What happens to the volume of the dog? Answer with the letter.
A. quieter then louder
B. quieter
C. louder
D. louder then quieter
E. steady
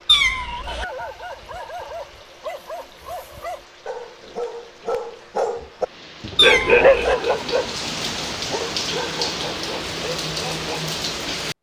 D.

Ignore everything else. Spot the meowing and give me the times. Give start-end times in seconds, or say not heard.
0.1-0.8, 6.3-7.2.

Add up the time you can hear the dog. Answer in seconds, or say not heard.
10 s.